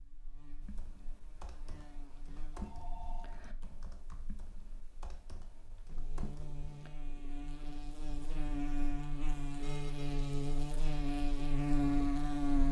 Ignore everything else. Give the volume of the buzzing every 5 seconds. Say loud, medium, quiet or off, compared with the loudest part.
quiet, medium, loud.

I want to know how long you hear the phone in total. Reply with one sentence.
The phone can be heard for 2 seconds in total.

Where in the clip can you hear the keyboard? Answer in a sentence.
You can hear the keyboard from 0.6 to 6.9 s.